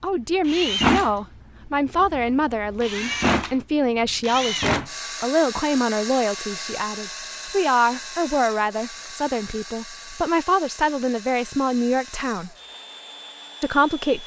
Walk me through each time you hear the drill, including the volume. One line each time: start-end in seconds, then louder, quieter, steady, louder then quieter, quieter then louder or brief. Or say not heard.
0.5-14.2 quieter.